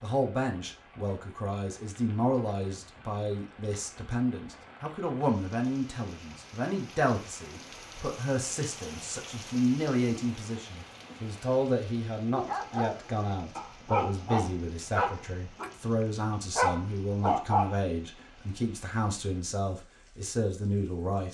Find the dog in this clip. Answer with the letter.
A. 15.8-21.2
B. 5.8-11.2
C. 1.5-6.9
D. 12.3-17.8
D.